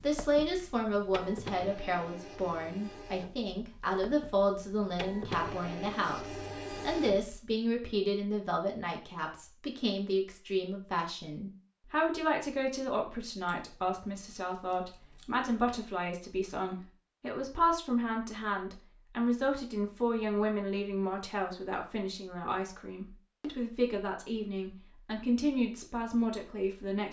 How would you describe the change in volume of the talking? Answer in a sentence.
The loudness of the talking stays about the same.